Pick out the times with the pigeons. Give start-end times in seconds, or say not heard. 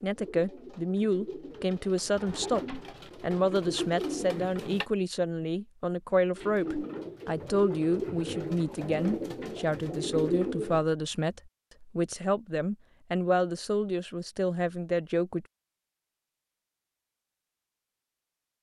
0.1-4.8, 6.3-10.8.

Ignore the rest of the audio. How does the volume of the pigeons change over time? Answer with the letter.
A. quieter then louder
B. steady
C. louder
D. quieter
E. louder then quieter
C.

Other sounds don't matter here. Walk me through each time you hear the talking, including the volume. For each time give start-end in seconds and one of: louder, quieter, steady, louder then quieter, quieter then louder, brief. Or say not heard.
0.0-15.4 steady.